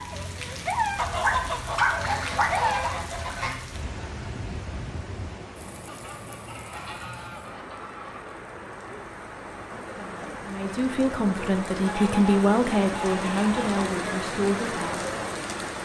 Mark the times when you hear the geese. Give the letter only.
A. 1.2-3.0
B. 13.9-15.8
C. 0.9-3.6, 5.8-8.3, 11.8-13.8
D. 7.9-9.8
C.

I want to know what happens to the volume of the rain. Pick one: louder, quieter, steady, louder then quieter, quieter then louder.
quieter then louder.